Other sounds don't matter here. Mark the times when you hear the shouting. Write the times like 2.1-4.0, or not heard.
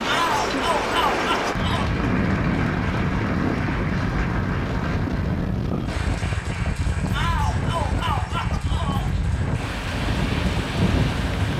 0.1-1.9, 7.1-9.1.